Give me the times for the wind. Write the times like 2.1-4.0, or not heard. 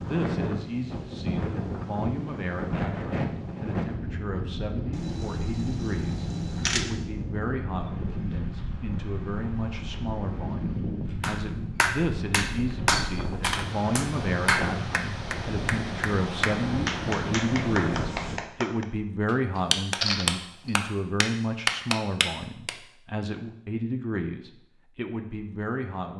0.0-18.4.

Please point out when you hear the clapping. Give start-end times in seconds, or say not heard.
11.2-22.7.